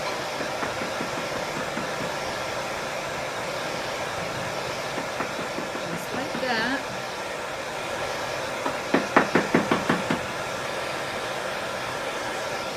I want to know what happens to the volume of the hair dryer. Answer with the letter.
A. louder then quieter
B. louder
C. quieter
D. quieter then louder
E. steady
E.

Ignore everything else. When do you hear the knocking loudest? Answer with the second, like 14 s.
9 s.